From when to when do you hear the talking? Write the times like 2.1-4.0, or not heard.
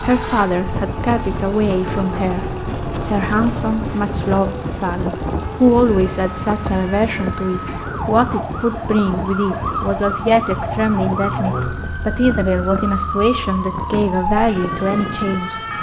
0.0-15.7.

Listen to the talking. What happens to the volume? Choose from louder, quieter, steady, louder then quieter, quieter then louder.
steady.